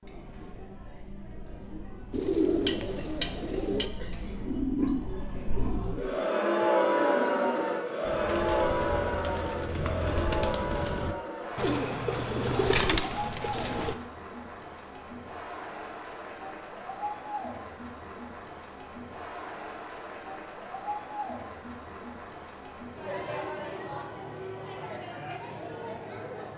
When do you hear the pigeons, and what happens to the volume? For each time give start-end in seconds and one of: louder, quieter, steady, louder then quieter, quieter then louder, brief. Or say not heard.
2.1-13.9 quieter then louder.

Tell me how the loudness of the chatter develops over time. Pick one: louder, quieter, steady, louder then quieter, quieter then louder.
louder then quieter.